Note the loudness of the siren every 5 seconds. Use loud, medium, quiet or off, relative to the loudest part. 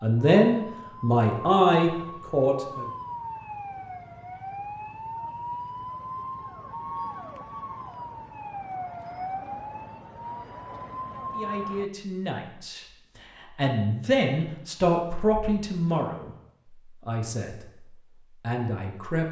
loud, loud, loud, off.